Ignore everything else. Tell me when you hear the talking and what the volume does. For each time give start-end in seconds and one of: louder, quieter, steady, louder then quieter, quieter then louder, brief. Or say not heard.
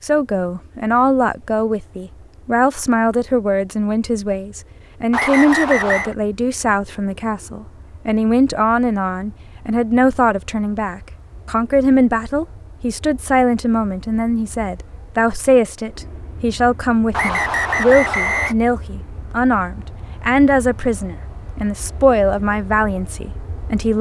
0.0-23.9 steady.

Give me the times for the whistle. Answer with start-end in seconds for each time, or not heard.
5.1-6.2, 17.1-18.6.